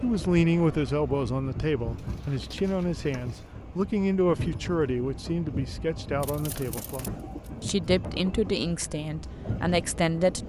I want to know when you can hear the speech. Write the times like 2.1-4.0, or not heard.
0.0-10.4.